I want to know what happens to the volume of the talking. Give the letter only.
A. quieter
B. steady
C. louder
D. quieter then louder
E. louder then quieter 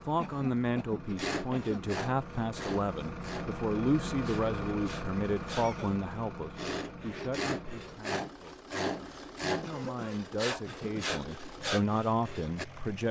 D.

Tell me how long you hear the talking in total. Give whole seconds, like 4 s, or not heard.
13 s.